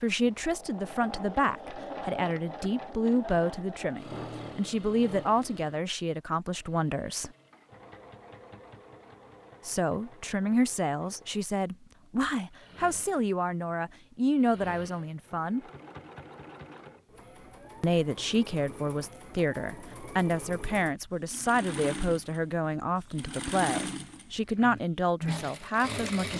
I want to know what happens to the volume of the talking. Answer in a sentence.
The loudness of the talking stays about the same.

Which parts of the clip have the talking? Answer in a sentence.
The talking can be heard from 0.0 to 7.3 s, from 9.7 to 15.6 s and from 17.8 to 26.3 s.